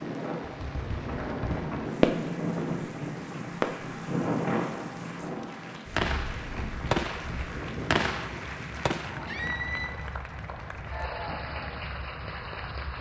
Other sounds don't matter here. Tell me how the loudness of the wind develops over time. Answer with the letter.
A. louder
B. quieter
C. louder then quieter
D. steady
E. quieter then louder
B.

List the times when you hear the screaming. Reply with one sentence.
The screaming can be heard from 9.2 to 9.9 s.